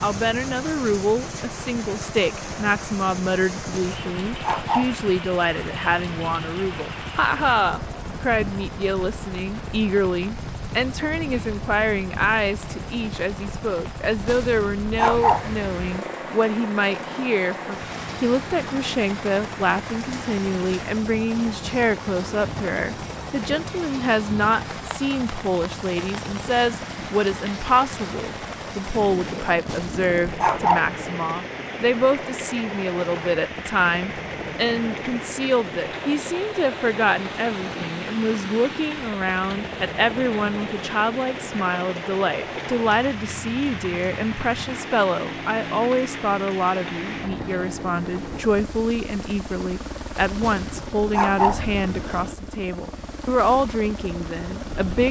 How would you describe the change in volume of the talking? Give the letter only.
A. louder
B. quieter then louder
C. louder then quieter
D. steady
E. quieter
D.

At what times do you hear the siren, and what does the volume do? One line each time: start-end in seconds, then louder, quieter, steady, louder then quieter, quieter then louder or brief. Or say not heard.
not heard.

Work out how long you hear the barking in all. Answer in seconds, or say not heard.
5 s.